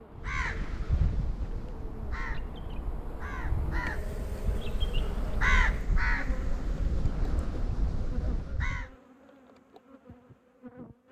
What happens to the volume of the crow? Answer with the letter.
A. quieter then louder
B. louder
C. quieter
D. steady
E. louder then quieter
E.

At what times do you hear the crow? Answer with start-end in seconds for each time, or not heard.
0.1-8.9.